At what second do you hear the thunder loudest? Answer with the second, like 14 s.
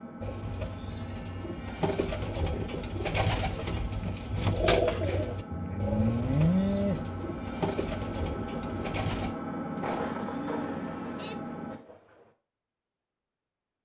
10 s.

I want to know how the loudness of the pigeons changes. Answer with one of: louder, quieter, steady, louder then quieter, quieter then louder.
louder then quieter.